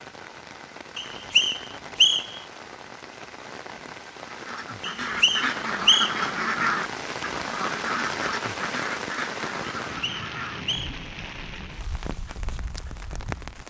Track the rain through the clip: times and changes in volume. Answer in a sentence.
The rain can be heard from 0.0 to 13.6 s, getting louder then quieter.